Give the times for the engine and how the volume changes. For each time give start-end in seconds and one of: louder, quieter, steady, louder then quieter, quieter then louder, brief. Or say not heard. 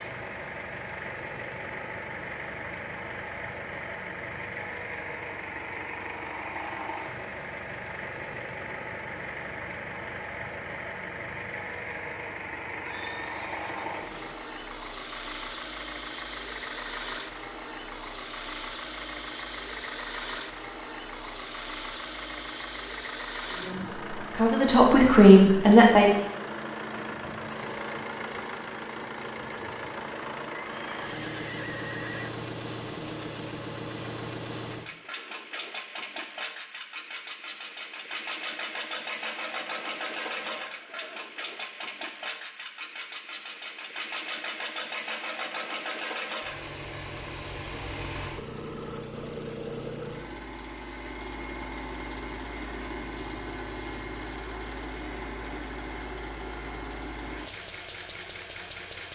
0.0-59.1 steady.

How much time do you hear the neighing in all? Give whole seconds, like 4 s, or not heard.
4 s.